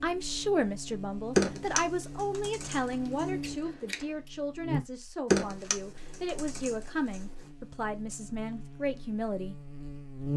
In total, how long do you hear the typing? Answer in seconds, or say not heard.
4 s.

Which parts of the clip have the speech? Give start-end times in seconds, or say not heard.
0.0-9.6.